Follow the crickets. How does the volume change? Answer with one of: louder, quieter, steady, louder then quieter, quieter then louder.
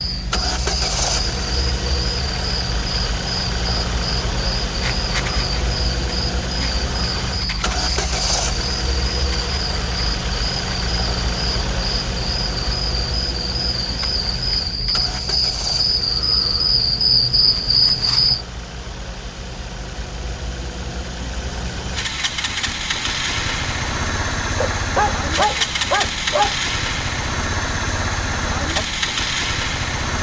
louder.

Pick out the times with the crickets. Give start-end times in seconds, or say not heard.
0.0-18.4.